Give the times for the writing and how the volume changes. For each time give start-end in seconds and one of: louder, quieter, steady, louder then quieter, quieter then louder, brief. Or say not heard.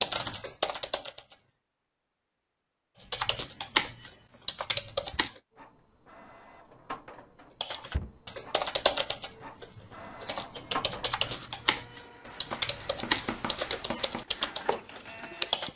11.1-15.7 louder.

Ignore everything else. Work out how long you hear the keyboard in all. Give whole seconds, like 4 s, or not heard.
12 s.